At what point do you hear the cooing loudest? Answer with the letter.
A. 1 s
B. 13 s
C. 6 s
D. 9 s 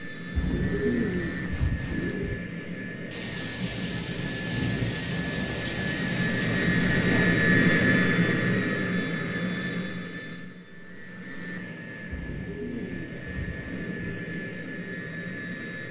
A.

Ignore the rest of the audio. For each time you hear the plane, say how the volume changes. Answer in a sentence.
The plane can be heard from 0.0 to 15.8 s, getting louder then quieter.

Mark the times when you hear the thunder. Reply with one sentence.
The thunder can be heard from 3.1 to 7.4 s.